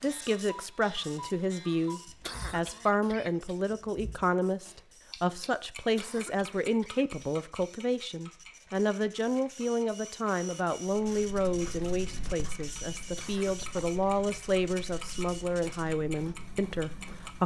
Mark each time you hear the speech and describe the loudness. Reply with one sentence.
You can hear the speech from 0.0 to 17.4 s, at a steady volume.